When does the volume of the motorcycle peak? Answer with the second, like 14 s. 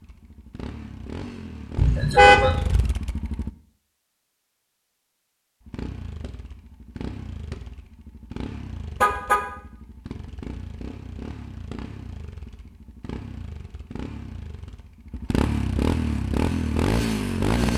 17 s.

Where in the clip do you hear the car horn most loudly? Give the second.
2 s.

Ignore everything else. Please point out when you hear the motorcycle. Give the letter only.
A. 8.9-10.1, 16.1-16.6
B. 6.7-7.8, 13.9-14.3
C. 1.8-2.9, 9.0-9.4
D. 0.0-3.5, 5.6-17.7
D.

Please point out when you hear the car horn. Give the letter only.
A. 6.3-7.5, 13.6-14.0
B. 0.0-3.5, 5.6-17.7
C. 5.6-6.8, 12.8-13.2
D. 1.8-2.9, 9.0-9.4
D.